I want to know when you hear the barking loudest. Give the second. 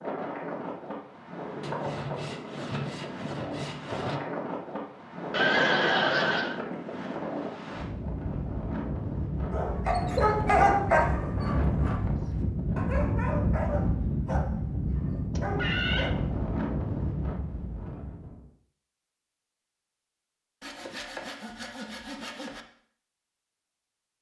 11 s.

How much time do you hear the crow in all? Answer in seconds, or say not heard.
not heard.